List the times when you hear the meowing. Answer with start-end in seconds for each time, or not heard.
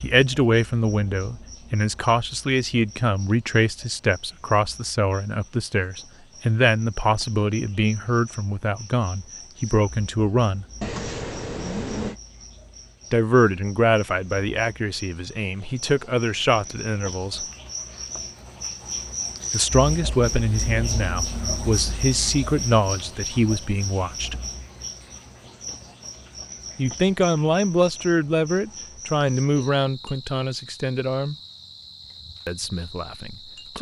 10.8-12.2.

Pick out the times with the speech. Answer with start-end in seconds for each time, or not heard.
0.0-10.7, 13.1-17.4, 19.5-24.4, 26.8-31.4, 32.5-33.7.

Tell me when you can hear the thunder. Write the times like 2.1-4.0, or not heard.
not heard.